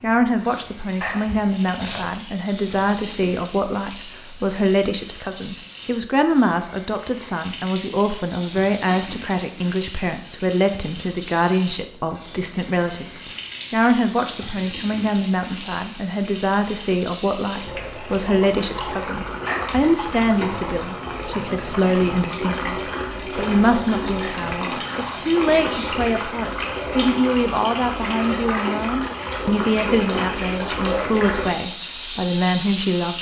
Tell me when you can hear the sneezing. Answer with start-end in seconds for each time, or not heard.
1.0-2.1, 19.4-19.9, 24.2-26.2.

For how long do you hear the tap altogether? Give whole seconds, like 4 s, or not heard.
33 s.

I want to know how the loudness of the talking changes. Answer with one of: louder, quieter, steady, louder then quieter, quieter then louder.
steady.